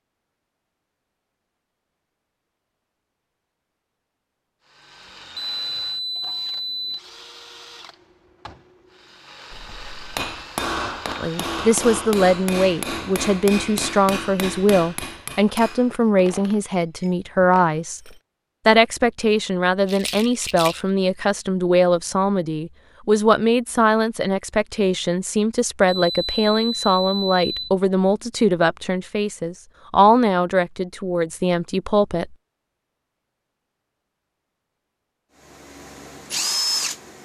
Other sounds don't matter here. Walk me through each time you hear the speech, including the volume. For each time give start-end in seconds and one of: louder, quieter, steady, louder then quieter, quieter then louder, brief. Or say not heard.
11.2-32.4 steady.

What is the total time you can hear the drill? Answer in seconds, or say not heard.
9 s.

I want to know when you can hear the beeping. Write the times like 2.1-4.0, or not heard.
5.3-7.0, 25.9-27.7.